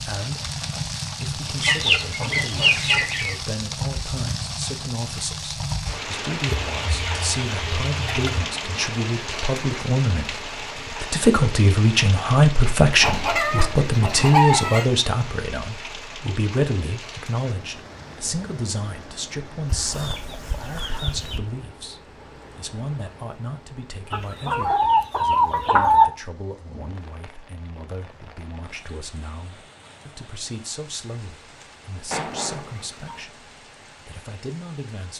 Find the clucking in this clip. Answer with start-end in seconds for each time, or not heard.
1.6-3.4, 6.5-8.5, 12.9-14.8, 19.6-21.4, 24.1-26.1, 32.1-33.2.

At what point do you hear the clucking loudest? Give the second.
26 s.